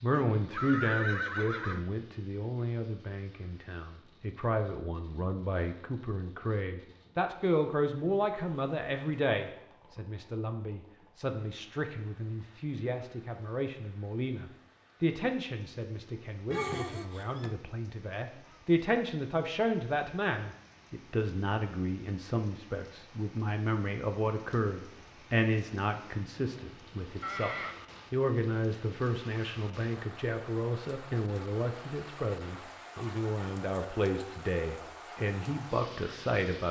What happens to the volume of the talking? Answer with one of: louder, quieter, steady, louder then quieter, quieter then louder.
steady.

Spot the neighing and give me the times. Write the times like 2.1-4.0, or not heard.
0.1-1.9, 16.5-17.5, 26.1-27.8.